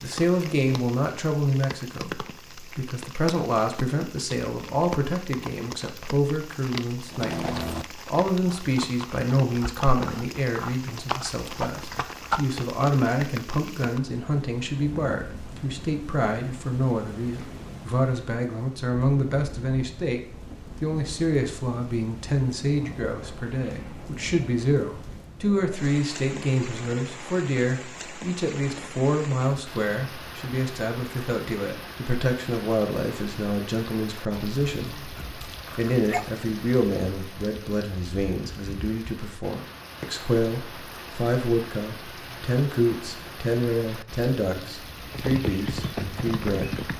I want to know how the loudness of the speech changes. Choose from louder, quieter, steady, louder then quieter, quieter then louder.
steady.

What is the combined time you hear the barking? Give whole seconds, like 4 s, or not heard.
2 s.